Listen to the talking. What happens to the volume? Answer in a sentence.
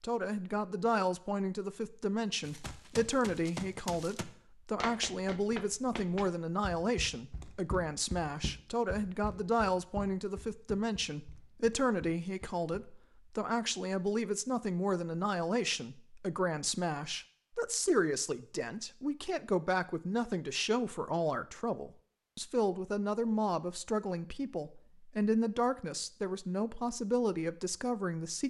The loudness of the talking stays about the same.